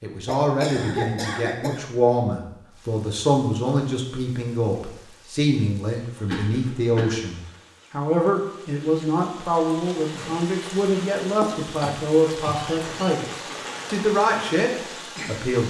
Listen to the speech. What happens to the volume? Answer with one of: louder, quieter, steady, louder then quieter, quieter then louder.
steady.